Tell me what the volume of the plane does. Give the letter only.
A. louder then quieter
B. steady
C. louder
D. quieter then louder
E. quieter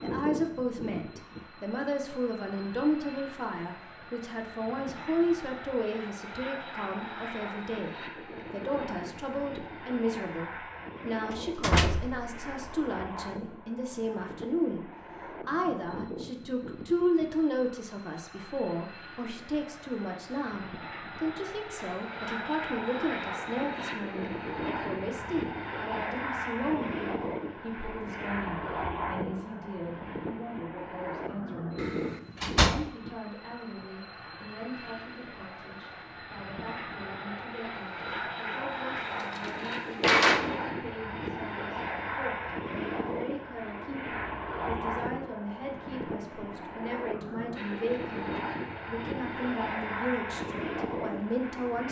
C.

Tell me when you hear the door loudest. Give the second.
40 s.